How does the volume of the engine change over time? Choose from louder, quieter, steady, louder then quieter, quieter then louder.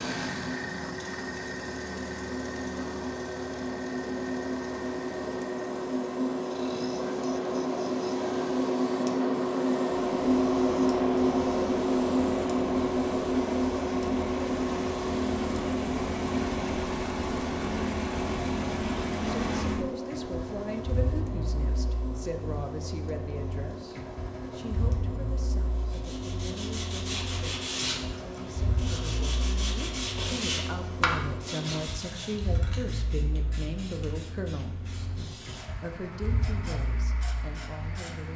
louder then quieter.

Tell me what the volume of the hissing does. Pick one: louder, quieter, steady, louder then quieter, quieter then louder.
louder then quieter.